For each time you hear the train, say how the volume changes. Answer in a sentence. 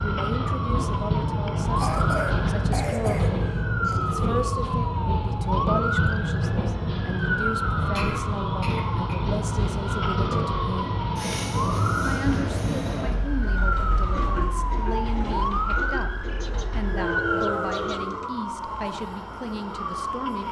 You can hear the train from 0.0 to 20.4 s, getting quieter.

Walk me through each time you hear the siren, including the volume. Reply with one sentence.
The siren can be heard from 0.0 to 20.4 s, at a steady volume.